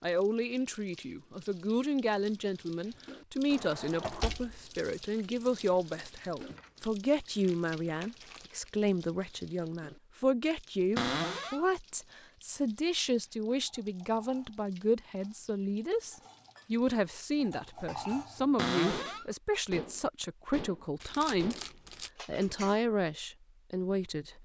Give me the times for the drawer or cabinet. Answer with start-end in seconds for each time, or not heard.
3.5-4.6, 10.9-11.7, 18.6-19.2.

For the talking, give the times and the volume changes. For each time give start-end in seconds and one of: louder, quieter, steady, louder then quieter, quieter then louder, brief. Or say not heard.
0.0-21.6 steady
22.2-24.3 brief.